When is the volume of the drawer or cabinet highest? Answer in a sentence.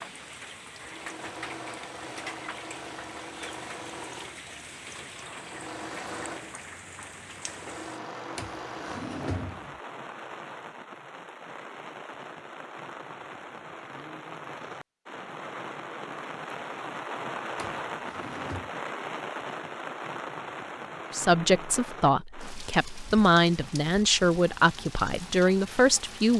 The volume of the drawer or cabinet peaks at 9 seconds.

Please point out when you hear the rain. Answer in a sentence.
You can hear the rain from 0.0 to 26.3 s.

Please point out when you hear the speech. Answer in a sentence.
The speech can be heard from 21.1 to 26.3 s.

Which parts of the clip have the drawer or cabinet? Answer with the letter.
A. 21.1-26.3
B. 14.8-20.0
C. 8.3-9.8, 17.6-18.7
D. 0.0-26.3
C.